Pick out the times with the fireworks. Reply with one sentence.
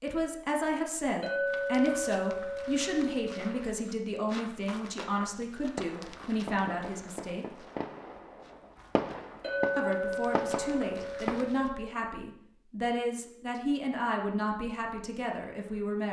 You can hear the fireworks from 5.8 to 11.4 s.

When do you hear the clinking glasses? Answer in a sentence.
You can hear the clinking glasses from 1.2 to 3.6 s and from 9.4 to 11.9 s.